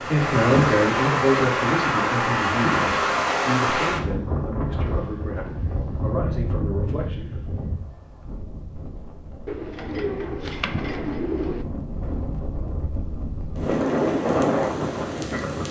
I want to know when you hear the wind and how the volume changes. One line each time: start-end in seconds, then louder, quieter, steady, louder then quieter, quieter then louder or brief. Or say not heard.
0.0-15.6 quieter then louder.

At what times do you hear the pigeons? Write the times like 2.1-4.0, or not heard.
9.4-11.7.